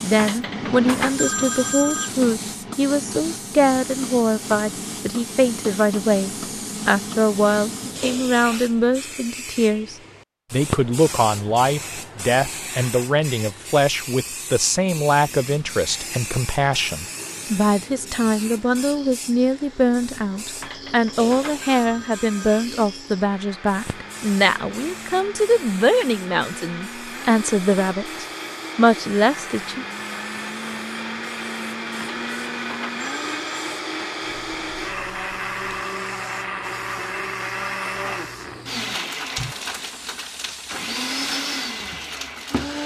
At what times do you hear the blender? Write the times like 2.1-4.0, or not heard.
15.7-42.8.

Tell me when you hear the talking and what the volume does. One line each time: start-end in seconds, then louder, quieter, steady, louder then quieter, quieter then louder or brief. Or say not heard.
0.0-29.9 steady.